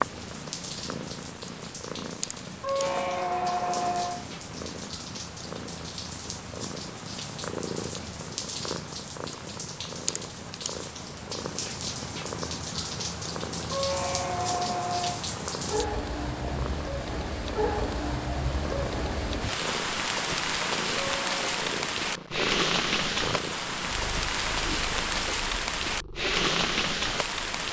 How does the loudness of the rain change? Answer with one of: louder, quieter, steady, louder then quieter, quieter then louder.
louder.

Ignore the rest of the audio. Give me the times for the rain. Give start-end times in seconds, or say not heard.
0.0-27.6.